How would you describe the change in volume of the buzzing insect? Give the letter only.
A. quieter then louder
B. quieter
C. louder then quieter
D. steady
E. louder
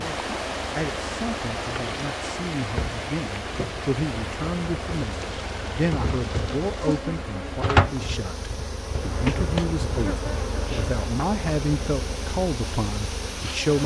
C.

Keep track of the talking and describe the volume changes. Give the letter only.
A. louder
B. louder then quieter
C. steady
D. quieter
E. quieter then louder
A.